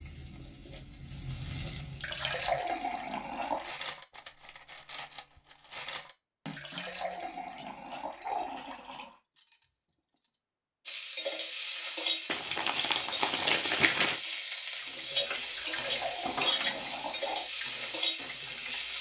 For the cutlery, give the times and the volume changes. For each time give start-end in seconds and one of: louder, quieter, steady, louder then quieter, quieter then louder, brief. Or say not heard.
2.6-10.4 quieter
14.8-18.9 louder then quieter.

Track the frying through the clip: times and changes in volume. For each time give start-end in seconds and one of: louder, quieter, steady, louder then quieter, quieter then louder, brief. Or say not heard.
0.0-2.6 brief
10.8-18.9 steady.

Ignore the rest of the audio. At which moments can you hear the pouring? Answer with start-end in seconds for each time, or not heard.
1.9-3.8, 6.5-9.2, 15.5-17.5.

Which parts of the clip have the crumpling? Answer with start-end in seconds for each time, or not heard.
12.2-14.2.